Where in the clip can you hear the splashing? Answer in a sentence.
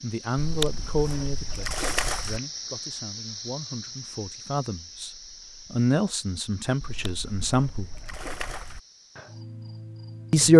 You can hear the splashing from 0.3 to 2.4 s and from 6.8 to 8.8 s.